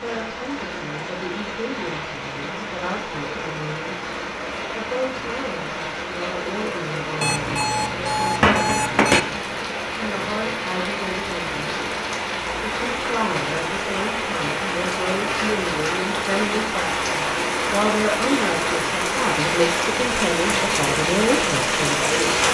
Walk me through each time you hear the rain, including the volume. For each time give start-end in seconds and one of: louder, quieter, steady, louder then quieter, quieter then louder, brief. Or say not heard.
0.0-22.4 louder.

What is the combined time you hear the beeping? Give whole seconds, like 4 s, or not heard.
2 s.